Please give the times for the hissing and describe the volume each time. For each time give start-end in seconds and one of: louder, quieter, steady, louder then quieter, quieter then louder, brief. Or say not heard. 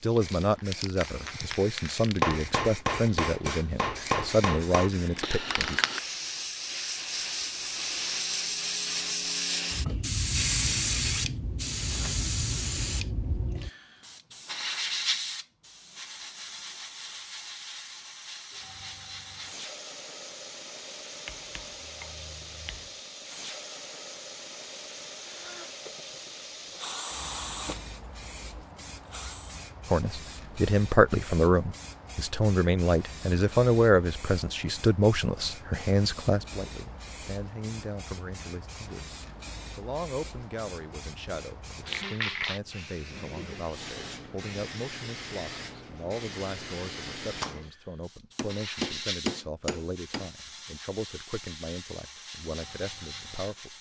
0.0-53.7 quieter.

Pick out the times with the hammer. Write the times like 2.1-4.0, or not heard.
2.2-4.9, 21.2-23.0, 48.4-50.3.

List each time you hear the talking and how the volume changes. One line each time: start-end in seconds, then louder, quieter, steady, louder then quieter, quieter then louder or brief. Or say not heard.
0.0-5.8 steady
29.9-39.1 quieter
39.8-53.7 steady.